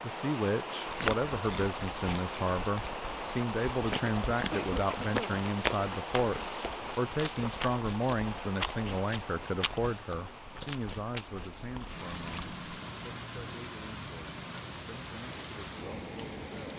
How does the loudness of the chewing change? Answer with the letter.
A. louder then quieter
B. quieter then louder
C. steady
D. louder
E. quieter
A.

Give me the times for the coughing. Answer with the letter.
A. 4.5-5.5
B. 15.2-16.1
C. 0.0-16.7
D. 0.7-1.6
A.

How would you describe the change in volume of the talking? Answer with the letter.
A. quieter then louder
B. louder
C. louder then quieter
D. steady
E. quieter
E.